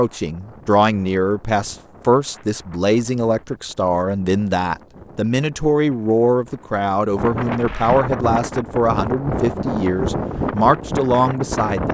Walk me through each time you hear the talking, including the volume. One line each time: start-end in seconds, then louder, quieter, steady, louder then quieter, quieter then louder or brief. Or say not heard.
0.0-11.8 steady.